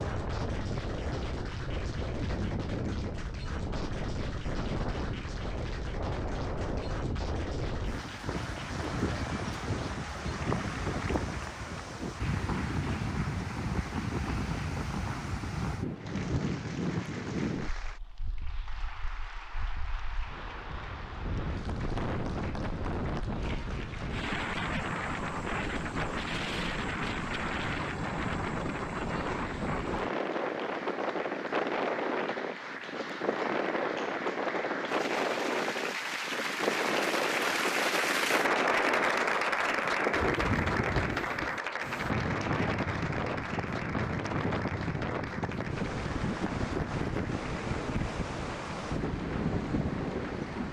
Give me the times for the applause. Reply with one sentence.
The applause can be heard from 0.0 to 50.6 s.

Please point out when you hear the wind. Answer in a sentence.
You can hear the wind from 0.0 to 50.6 s.